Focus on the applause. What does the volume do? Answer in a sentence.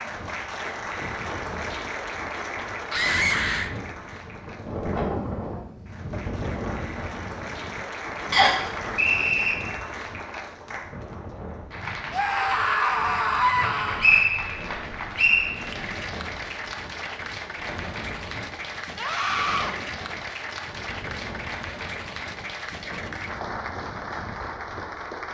The loudness of the applause stays about the same.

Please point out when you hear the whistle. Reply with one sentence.
You can hear the whistle from 8.3 to 9.6 s and from 14.0 to 15.5 s.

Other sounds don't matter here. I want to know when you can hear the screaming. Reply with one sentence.
The screaming can be heard from 2.9 to 3.7 s, from 12.1 to 14.1 s and from 18.9 to 19.8 s.